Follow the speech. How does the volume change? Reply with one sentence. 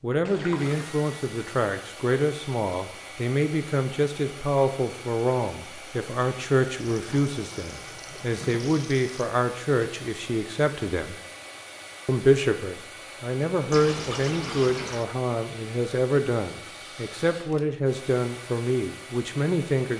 The volume of the speech stays about the same.